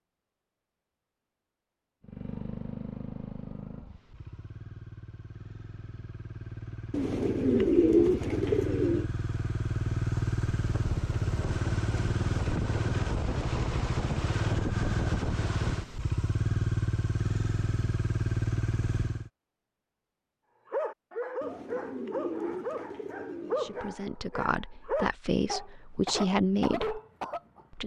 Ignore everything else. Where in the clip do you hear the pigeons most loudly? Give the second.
8 s.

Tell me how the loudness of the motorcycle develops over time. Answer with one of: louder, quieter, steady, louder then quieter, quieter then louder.
louder.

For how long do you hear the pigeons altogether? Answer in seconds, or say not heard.
5 s.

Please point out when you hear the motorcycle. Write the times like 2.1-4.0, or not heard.
2.0-19.3.